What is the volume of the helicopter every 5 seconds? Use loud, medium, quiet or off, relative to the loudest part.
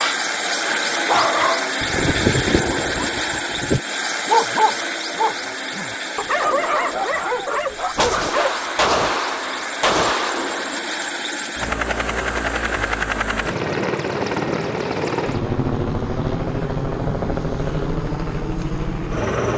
loud, medium, loud, loud.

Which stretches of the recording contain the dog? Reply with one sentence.
You can hear the dog from 0.0 to 8.5 s.